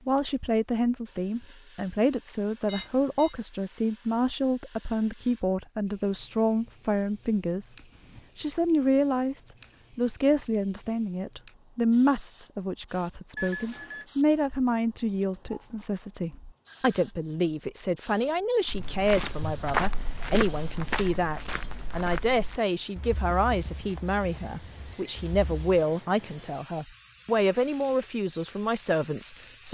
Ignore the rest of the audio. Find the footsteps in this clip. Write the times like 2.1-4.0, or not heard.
18.6-25.6.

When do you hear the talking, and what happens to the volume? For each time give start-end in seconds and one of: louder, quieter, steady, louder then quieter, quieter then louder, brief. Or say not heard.
0.1-29.7 steady.